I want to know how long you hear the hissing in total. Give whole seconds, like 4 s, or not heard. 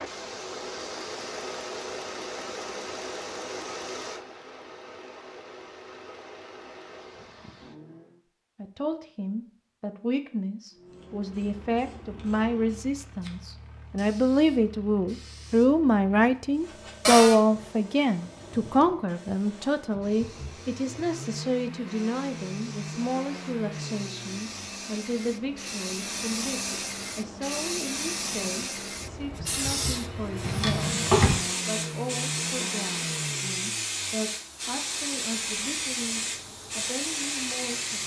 27 s.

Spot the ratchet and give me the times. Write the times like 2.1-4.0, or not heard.
not heard.